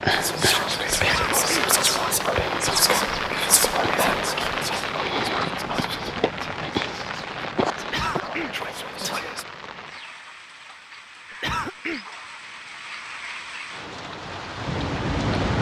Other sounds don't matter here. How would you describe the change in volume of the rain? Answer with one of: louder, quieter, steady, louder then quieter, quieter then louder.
quieter then louder.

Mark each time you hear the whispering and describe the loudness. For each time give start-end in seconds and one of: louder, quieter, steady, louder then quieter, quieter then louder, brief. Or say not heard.
0.1-9.4 quieter.